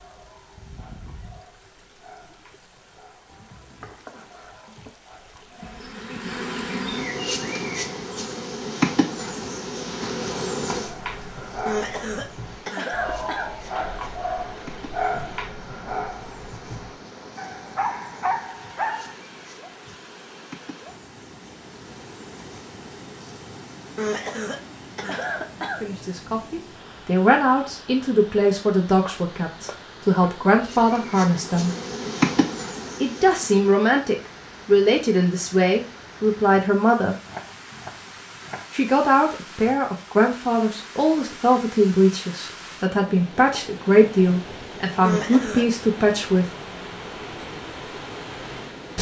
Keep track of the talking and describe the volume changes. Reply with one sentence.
The volume of the talking stays about the same.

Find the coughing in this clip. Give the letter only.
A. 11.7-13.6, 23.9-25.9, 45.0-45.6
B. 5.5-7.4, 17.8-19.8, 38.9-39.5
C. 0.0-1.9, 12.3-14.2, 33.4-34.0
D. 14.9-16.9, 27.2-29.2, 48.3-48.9
A.